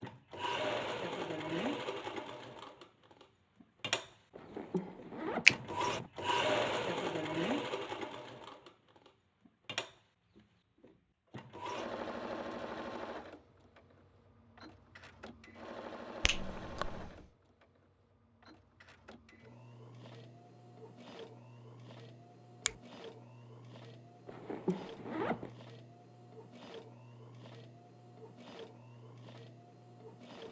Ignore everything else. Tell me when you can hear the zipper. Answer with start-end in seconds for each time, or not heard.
4.3-6.1, 24.2-25.5.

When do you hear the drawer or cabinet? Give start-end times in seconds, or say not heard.
not heard.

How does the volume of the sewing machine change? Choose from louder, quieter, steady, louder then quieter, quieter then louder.
quieter.